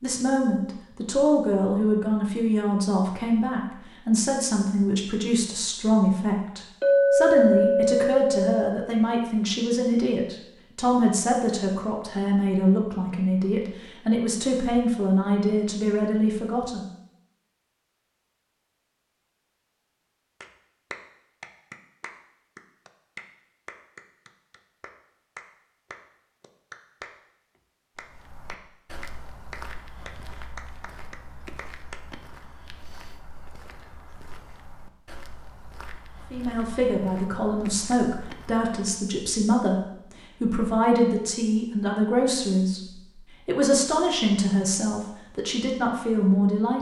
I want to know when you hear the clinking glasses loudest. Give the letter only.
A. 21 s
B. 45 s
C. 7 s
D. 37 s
C.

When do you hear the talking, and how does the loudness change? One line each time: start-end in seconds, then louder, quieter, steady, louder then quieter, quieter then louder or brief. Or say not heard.
0.0-16.9 steady
36.3-46.7 steady.